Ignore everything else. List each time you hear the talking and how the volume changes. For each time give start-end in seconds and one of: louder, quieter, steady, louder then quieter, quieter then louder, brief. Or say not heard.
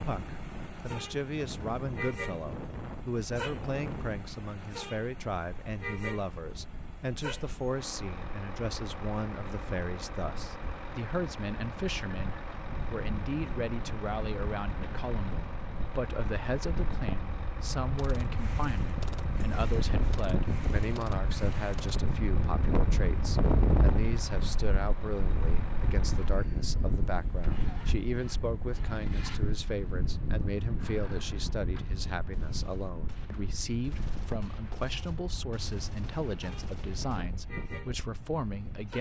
0.0-38.9 steady.